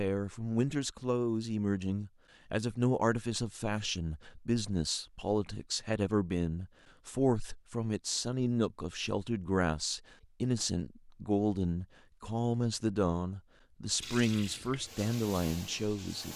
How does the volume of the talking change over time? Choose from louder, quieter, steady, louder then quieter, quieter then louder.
steady.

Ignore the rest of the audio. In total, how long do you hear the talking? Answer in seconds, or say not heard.
16 s.